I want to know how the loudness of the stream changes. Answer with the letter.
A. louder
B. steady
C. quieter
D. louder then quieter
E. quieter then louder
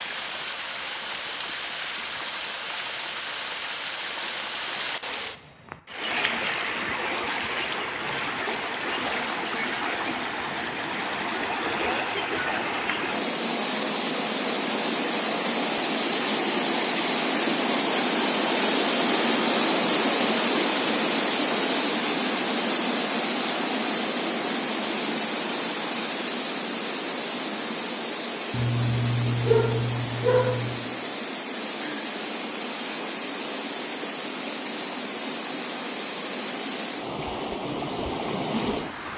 D.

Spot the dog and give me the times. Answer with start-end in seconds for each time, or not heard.
28.5-30.9.